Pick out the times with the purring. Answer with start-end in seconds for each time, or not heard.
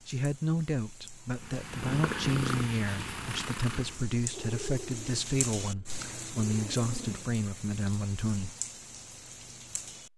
1.4-7.4.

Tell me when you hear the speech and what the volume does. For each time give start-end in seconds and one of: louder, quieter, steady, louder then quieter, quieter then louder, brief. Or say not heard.
0.1-8.6 steady.